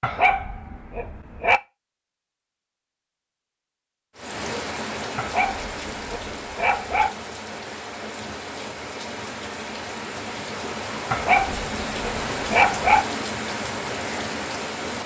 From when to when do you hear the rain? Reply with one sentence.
You can hear the rain from 4.2 to 15.0 s.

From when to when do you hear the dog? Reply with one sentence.
The dog can be heard from 0.0 to 1.6 s, from 5.2 to 7.1 s and from 11.1 to 13.1 s.